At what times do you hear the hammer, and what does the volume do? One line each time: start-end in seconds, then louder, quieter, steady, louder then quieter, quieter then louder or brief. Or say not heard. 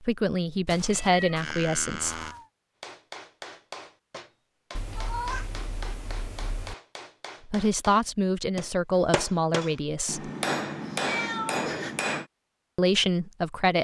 2.8-12.2 louder.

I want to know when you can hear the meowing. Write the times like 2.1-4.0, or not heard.
0.7-2.5, 4.8-6.8, 10.9-11.9.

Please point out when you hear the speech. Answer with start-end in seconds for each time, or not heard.
0.0-2.2, 7.5-10.3, 12.8-13.7.